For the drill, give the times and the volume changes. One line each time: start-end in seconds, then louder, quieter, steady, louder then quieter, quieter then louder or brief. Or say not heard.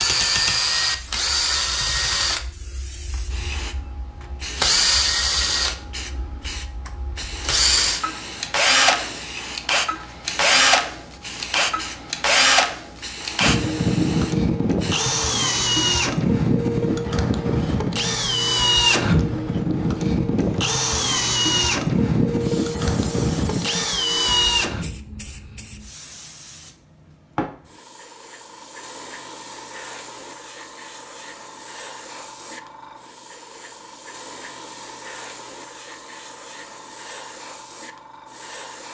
0.0-24.9 steady.